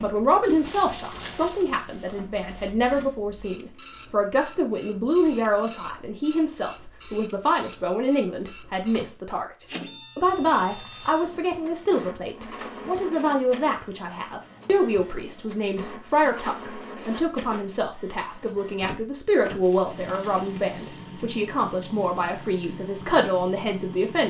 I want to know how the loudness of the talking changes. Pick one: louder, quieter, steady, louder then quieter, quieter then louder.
steady.